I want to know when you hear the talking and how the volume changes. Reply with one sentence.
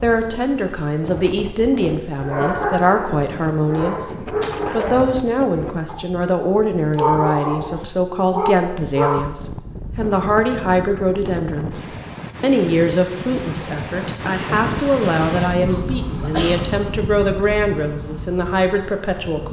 The talking can be heard from 0.0 to 11.8 s, at a steady volume; and from 12.4 to 19.4 s, at a steady volume.